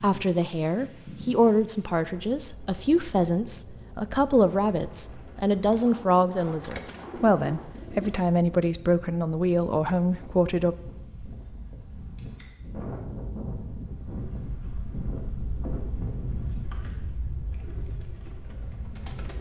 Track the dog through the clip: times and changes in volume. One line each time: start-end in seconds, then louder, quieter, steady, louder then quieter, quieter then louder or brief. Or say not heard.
not heard.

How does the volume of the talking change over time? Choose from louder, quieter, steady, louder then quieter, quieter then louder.
steady.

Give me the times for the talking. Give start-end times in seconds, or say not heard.
0.0-10.8.